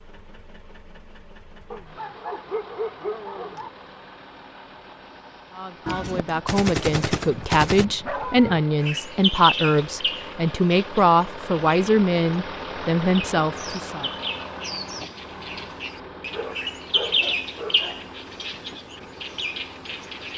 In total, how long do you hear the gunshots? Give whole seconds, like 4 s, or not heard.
2 s.